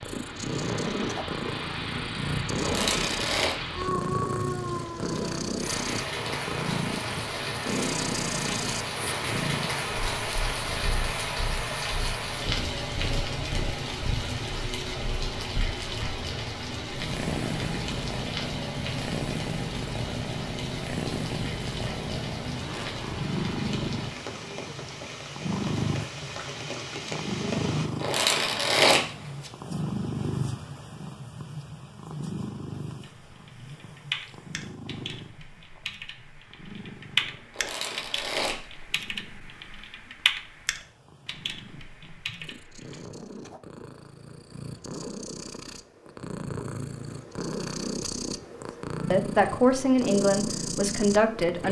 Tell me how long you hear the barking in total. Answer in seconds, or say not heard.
not heard.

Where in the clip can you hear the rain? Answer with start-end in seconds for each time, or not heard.
0.0-27.9.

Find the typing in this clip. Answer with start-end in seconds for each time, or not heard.
33.0-43.0.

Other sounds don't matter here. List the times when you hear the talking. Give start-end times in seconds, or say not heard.
49.1-51.6.